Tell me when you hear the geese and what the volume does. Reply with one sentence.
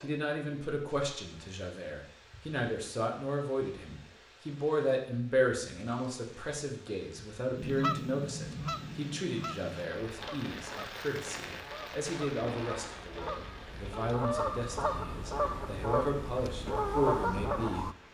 You can hear the geese from 7.5 to 17.9 s, getting quieter then louder.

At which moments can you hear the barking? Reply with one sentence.
The barking can't be heard in this clip.